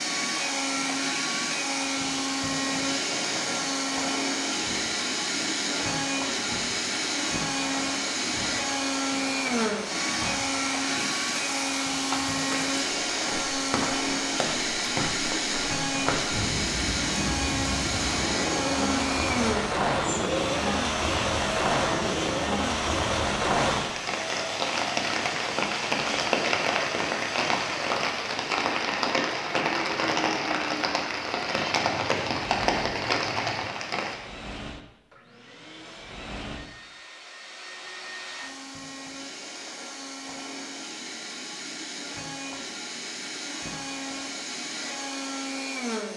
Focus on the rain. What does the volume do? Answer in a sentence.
The volume of the rain goes up.